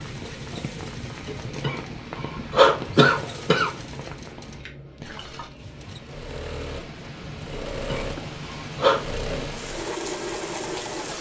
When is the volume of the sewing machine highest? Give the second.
10 s.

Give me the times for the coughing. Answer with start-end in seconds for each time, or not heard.
1.2-3.7, 7.5-9.1.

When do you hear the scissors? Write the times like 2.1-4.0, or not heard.
3.8-5.8.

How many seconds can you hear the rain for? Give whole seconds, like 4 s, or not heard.
11 s.